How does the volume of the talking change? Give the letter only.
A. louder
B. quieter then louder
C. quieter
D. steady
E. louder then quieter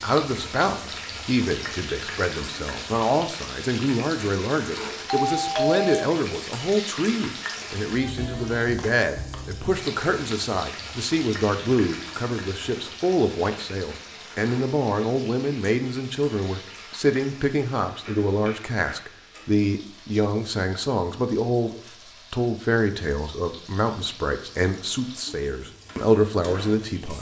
D.